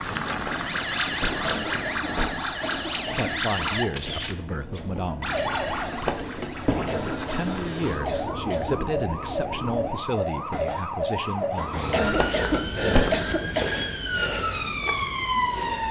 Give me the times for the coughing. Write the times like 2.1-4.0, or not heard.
1.4-3.5, 6.8-8.8, 11.9-13.8.